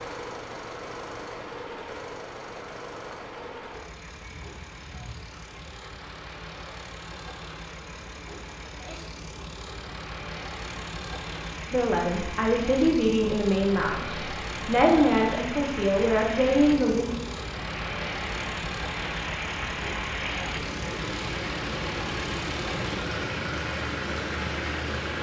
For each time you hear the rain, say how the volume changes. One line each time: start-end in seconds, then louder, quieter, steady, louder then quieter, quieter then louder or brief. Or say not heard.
0.0-25.1 louder.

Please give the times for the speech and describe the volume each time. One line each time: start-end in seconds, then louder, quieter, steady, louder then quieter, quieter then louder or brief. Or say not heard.
11.7-17.1 steady.